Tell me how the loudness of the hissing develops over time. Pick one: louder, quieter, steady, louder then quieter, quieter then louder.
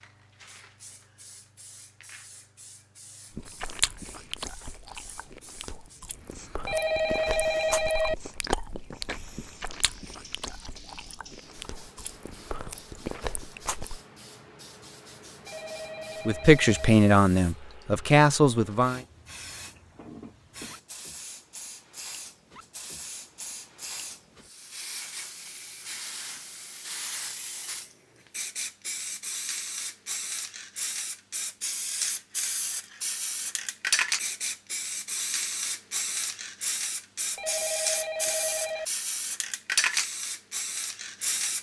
louder.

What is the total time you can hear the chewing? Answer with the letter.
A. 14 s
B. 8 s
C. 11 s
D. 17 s
C.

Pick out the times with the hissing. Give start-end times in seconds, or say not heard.
0.0-41.5.